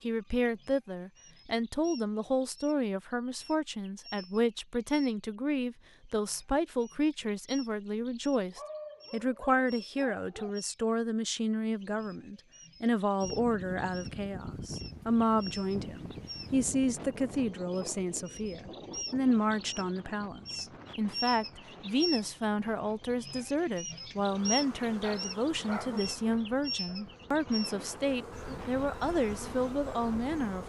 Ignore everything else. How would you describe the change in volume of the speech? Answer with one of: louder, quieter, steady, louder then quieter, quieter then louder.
steady.